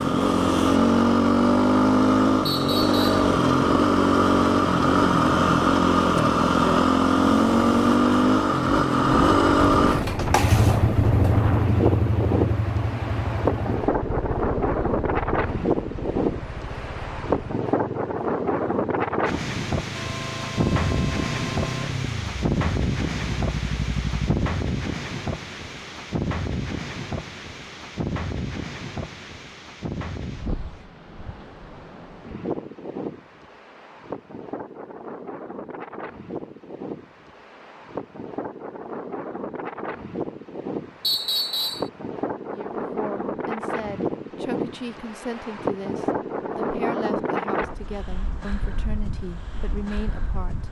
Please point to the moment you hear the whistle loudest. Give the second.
41 s.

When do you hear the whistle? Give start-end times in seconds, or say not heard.
2.5-3.2, 41.0-41.9.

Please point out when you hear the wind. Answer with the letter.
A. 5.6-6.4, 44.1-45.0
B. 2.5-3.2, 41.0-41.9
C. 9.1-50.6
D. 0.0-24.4
C.